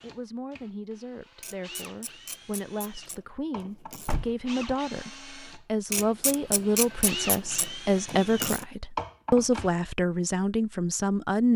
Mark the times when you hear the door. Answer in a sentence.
You can hear the door from 4.0 to 4.8 s.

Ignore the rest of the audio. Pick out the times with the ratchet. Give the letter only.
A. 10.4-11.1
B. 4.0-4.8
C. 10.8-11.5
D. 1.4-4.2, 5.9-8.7
D.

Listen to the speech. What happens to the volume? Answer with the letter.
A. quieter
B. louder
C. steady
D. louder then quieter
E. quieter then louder
B.